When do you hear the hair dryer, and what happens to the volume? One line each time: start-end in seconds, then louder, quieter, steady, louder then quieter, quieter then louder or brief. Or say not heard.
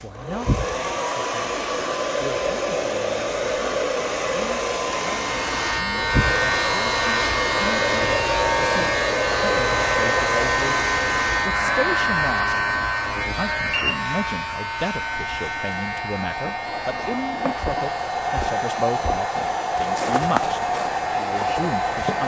0.0-22.2 quieter then louder.